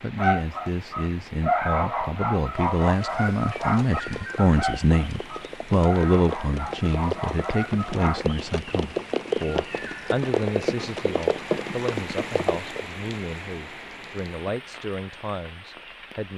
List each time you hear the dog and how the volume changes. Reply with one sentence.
The dog can be heard from 0.1 to 8.3 s, getting quieter.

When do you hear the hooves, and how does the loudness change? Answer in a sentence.
You can hear the hooves from 2.6 to 12.7 s, getting louder.